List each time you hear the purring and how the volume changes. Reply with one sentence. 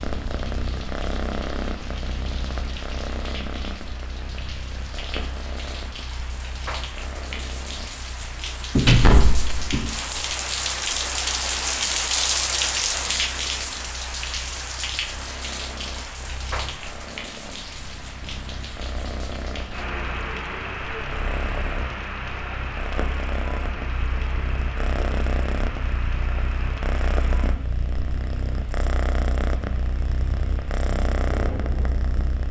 The purring can be heard from 0.0 to 32.4 s, getting quieter then louder.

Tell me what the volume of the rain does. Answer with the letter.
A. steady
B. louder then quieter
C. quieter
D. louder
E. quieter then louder
B.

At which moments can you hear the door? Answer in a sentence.
The door can be heard from 8.8 to 9.9 s.